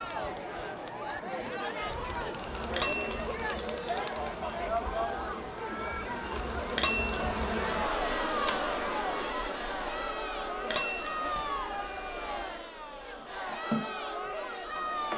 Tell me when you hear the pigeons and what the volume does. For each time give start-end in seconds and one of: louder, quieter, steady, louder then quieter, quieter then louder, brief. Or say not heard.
not heard.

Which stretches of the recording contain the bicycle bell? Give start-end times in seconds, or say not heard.
2.6-3.5, 6.7-7.3, 10.6-11.4.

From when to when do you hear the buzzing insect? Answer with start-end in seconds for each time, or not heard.
2.1-15.1.